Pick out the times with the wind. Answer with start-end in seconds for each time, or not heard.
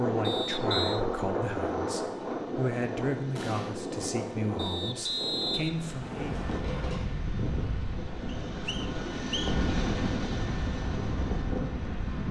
0.0-12.2.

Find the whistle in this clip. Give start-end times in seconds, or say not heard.
0.2-1.0, 4.5-6.6, 8.2-9.7.